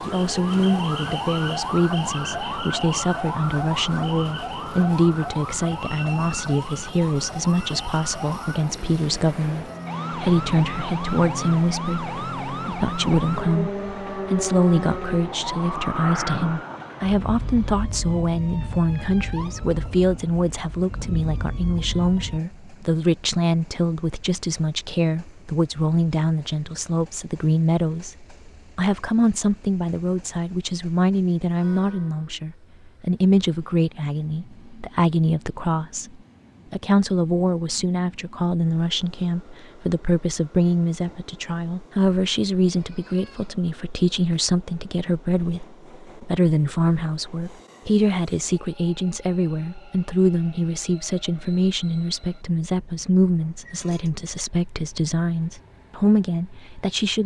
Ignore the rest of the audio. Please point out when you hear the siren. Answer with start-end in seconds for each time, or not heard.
0.0-22.4.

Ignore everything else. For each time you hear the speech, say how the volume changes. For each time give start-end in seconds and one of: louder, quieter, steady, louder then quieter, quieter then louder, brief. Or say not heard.
0.0-57.2 steady.